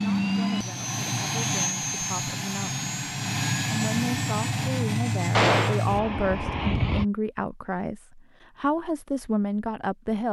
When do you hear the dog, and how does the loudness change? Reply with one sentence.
The dog can't be heard in this clip.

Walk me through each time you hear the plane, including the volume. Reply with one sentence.
The plane can be heard from 0.0 to 7.0 s, at a steady volume.